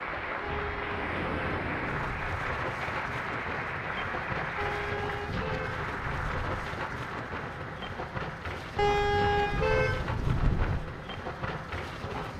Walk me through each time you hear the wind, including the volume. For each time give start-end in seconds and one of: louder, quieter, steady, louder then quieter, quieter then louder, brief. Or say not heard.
0.0-12.3 steady.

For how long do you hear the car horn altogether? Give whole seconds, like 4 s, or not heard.
6 s.